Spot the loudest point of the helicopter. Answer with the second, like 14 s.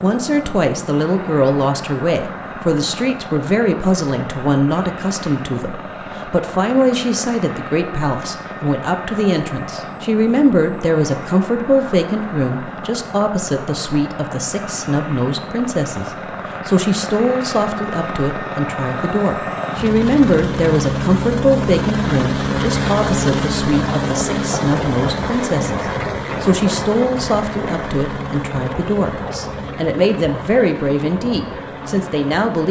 23 s.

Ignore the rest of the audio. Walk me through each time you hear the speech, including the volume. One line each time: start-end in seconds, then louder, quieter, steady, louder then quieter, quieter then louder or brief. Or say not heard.
0.0-32.6 steady.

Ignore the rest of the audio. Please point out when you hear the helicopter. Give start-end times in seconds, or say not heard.
0.0-32.6.